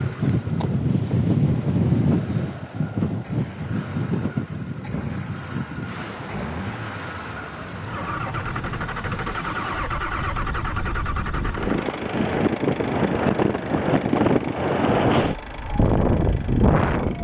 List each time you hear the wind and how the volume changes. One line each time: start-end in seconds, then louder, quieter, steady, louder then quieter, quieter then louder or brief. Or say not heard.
0.0-17.1 quieter then louder.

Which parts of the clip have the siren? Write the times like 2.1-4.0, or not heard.
not heard.